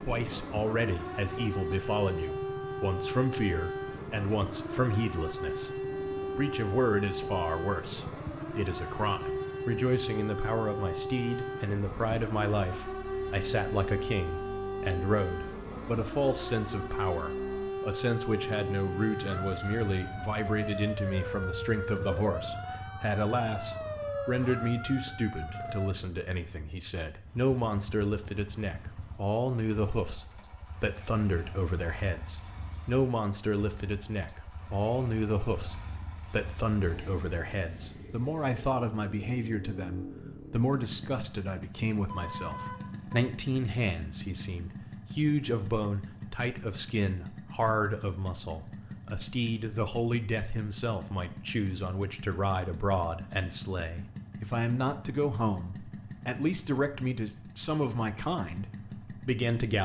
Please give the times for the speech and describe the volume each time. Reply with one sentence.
You can hear the speech from 0.0 to 59.8 s, at a steady volume.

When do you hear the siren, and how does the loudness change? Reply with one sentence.
You can hear the siren from 0.0 to 25.9 s, at a steady volume.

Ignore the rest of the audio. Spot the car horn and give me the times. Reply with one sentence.
You can hear the car horn from 42.0 to 43.3 s.